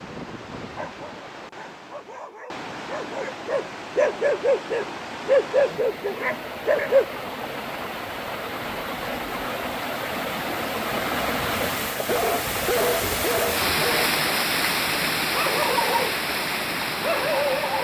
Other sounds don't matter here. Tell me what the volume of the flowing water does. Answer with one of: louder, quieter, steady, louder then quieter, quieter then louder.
louder.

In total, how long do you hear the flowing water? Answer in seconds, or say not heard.
18 s.